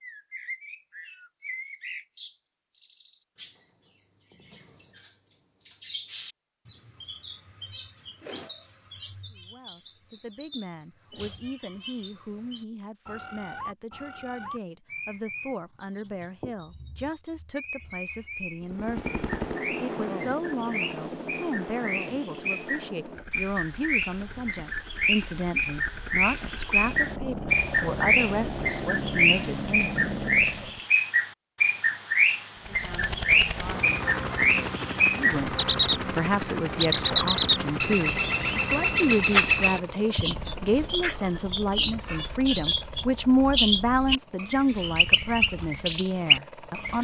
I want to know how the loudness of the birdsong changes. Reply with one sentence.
The loudness of the birdsong goes up.